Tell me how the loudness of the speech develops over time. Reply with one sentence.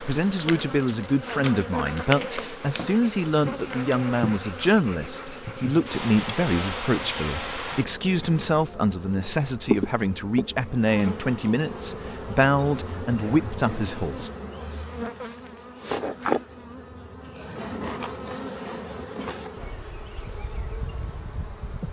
The volume of the speech stays about the same.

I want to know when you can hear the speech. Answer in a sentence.
You can hear the speech from 0.0 to 14.3 s.